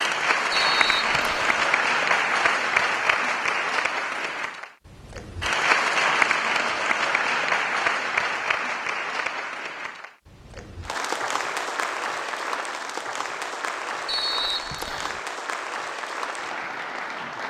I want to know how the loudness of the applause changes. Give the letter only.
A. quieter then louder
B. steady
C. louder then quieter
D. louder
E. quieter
E.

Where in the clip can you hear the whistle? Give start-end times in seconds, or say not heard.
0.5-1.6, 14.1-15.2.